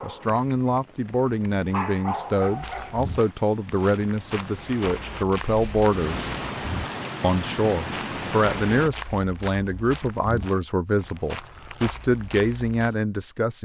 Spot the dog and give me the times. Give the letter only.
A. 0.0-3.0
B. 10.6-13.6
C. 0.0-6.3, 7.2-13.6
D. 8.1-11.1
A.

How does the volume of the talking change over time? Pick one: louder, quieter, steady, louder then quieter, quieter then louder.
steady.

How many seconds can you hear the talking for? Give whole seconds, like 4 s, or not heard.
13 s.